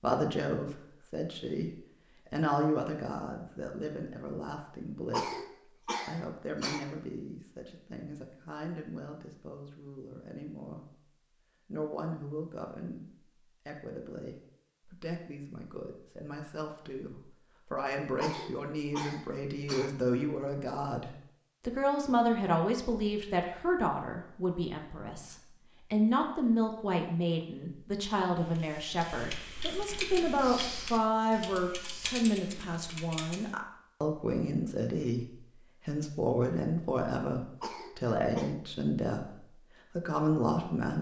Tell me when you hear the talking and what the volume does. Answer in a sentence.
You can hear the talking from 0.0 to 11.0 s, getting quieter; and from 11.7 to 40.9 s, getting louder.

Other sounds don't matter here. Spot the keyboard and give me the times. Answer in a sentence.
The keyboard can be heard from 28.4 to 33.5 s.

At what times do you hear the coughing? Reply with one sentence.
The coughing can be heard from 5.1 to 6.8 s, from 18.2 to 19.9 s and from 37.6 to 38.5 s.